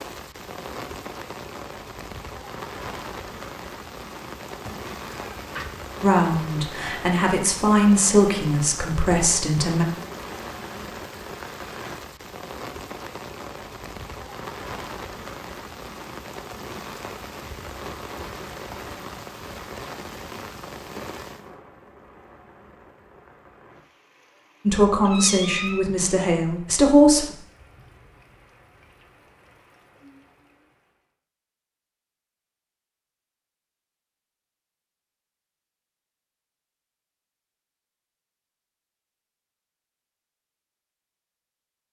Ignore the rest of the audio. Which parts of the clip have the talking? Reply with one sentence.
The talking can be heard from 6.0 to 9.8 s and from 24.6 to 27.3 s.